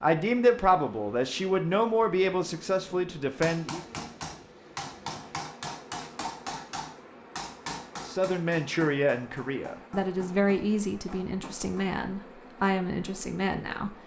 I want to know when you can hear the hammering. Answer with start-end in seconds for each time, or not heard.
3.4-12.0.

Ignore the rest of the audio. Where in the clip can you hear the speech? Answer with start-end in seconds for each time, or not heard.
0.0-3.9, 8.1-13.9.